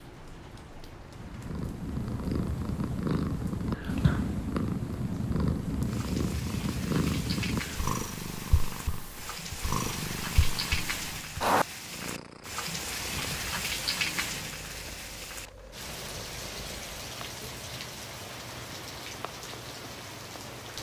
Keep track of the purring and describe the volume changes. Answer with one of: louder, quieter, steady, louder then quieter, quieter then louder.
quieter.